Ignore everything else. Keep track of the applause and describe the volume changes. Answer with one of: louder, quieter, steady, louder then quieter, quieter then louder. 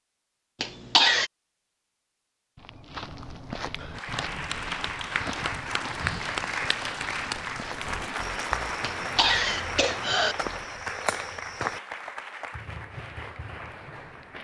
quieter.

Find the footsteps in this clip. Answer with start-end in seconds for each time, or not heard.
2.5-11.8.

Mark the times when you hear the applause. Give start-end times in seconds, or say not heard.
3.9-14.3.